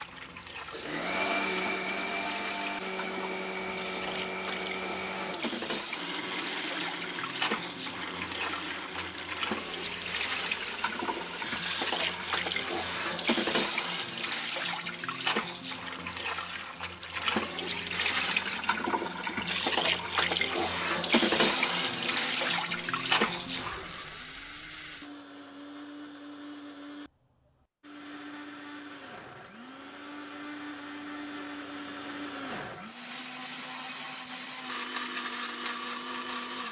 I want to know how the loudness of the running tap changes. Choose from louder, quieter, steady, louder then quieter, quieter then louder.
louder.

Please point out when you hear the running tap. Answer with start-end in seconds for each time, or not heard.
0.0-24.1.